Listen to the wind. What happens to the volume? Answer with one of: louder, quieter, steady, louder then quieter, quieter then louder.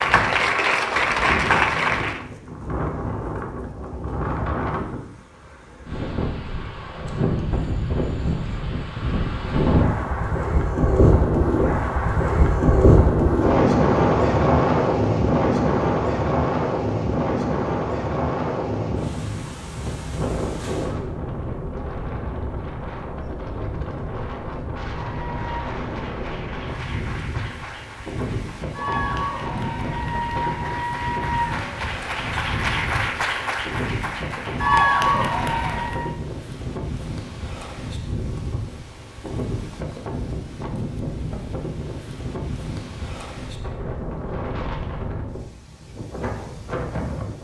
louder then quieter.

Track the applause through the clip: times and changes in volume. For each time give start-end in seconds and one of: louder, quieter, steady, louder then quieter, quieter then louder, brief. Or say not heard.
0.0-2.2 brief
24.9-36.1 louder.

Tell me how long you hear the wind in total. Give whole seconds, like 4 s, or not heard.
47 s.